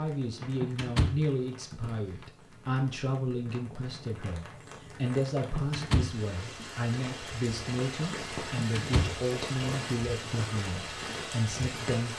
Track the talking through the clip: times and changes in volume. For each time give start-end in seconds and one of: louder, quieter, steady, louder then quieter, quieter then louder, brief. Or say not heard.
0.0-12.1 steady.